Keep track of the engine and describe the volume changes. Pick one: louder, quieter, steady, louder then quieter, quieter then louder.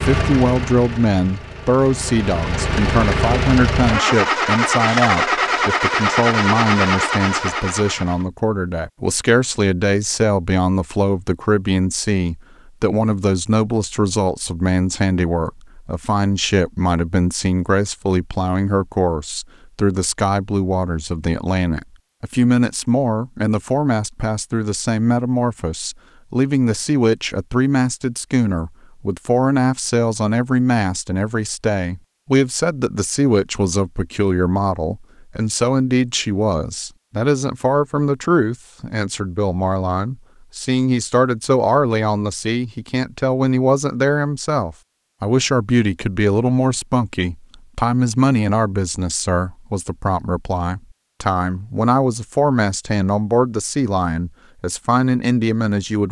louder.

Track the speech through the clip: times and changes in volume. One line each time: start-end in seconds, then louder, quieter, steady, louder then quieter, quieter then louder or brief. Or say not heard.
0.0-56.0 steady.